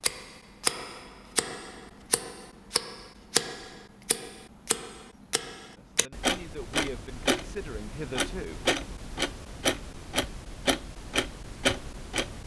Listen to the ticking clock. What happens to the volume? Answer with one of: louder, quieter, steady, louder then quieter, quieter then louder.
steady.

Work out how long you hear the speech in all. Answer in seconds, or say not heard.
3 s.